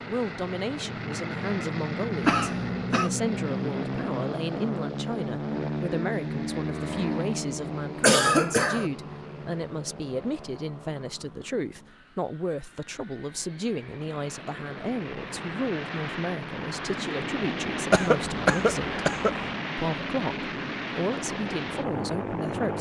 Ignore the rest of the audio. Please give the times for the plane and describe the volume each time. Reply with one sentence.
The plane can be heard from 0.0 to 22.7 s, getting quieter then louder.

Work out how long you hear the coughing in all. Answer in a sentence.
The coughing can be heard for 3 seconds in total.